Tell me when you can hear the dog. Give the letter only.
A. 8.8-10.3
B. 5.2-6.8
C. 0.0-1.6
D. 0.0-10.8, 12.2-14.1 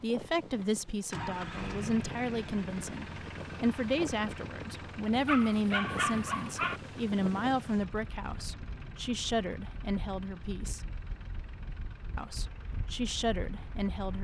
B.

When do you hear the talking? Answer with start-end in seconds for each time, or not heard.
0.0-10.8, 12.2-14.1.